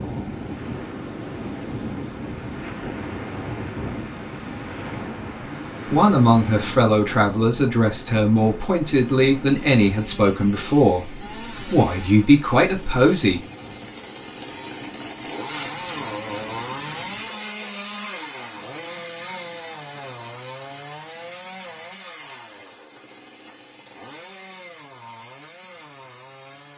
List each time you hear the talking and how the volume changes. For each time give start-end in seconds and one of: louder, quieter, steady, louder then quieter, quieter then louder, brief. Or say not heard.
5.9-13.4 steady.